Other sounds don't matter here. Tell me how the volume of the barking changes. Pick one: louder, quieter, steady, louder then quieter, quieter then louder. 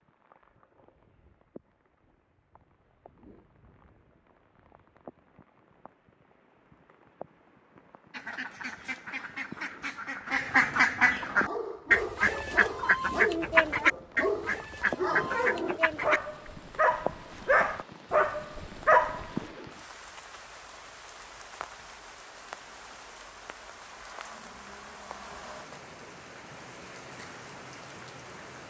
louder.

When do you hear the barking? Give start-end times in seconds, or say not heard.
11.4-19.3.